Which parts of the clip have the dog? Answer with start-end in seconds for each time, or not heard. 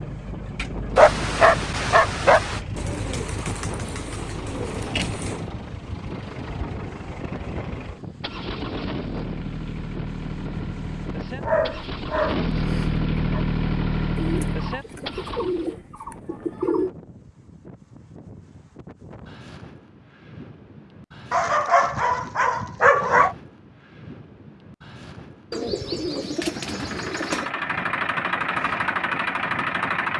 0.9-2.6, 11.4-13.4, 21.3-23.4.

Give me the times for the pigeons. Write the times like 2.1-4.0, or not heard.
2.8-5.5, 14.2-16.9, 25.5-27.5.